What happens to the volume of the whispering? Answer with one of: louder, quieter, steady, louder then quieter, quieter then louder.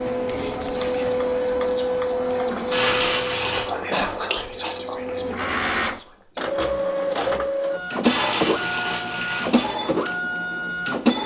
louder then quieter.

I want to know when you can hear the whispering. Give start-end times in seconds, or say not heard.
0.2-6.4.